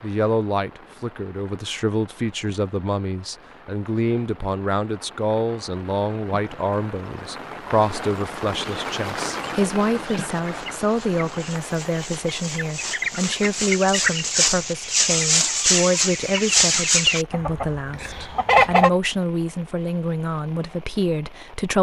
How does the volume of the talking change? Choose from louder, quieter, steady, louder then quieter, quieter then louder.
steady.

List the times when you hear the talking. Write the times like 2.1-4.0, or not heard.
0.0-21.7.